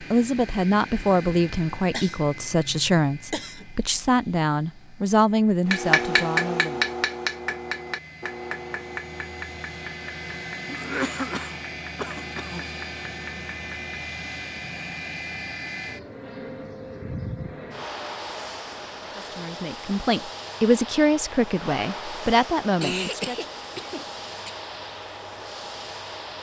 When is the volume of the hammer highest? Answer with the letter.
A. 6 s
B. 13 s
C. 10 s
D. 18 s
A.